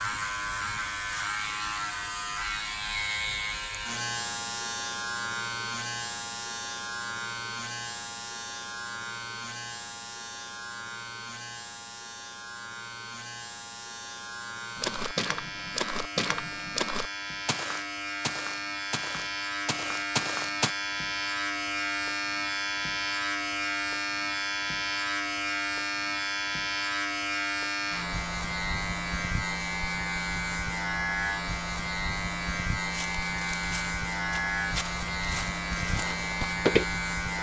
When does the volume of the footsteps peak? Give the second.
37 s.